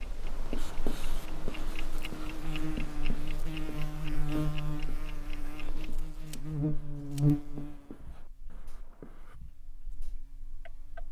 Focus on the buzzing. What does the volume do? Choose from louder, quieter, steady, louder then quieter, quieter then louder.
louder then quieter.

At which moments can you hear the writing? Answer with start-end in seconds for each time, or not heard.
0.2-9.3.